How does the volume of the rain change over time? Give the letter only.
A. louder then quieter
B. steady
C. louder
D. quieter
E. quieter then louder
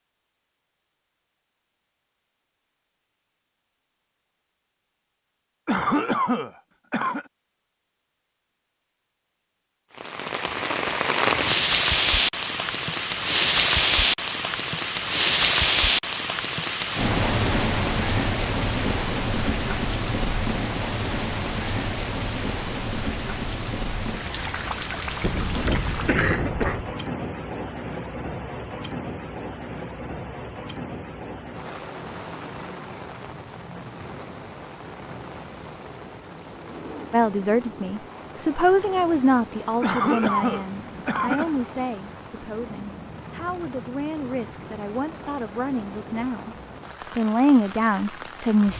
D.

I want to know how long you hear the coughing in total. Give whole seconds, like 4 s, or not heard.
5 s.